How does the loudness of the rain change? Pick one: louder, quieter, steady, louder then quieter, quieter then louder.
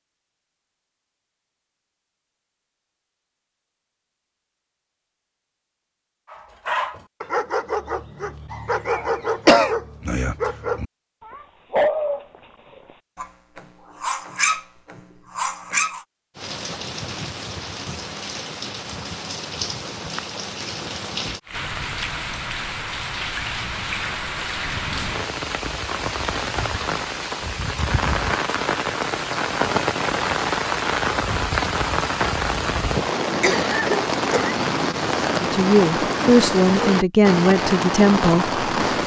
louder.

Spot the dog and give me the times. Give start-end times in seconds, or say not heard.
6.3-12.2, 13.2-16.1.